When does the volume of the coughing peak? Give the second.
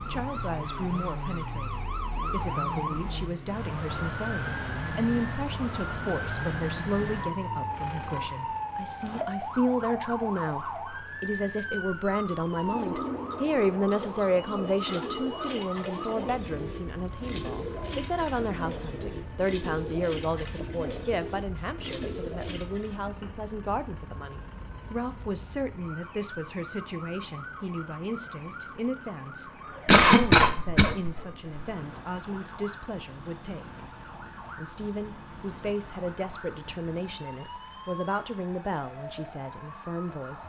30 s.